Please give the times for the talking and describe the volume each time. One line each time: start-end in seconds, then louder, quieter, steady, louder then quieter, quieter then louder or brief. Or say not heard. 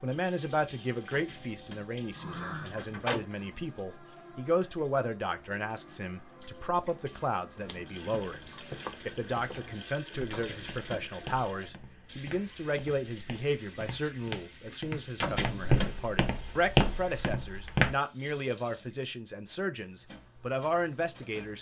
0.0-21.5 steady.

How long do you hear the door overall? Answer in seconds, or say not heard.
4 s.